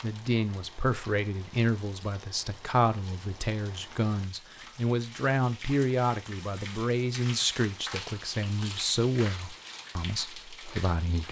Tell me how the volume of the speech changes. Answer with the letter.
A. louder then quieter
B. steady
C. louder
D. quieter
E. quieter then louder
B.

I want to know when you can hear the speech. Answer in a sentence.
The speech can be heard from 0.0 to 11.2 s.